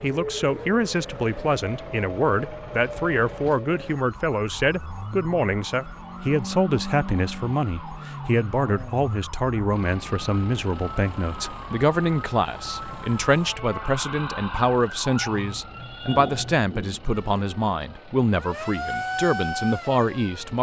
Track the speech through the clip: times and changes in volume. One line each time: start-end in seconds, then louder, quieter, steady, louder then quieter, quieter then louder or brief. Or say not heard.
0.0-20.5 steady.